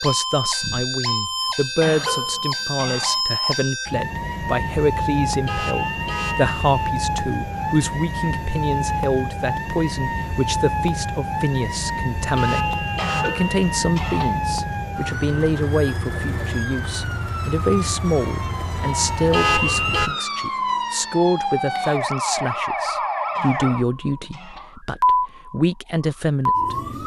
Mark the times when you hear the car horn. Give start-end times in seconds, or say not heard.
5.5-6.9, 12.3-13.6, 19.3-20.1.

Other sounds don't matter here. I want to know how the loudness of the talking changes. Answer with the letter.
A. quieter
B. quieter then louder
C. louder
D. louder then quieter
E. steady
E.